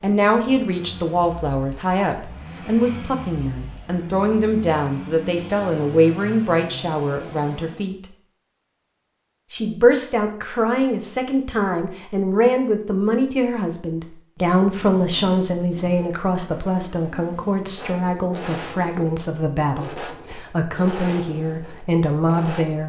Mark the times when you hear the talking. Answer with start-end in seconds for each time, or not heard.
0.0-8.0, 9.5-22.8.